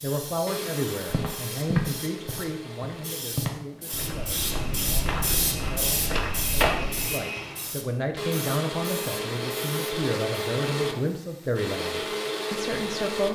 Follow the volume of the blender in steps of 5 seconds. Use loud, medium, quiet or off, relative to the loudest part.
medium, loud, loud.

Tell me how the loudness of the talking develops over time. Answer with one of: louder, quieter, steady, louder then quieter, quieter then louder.
quieter then louder.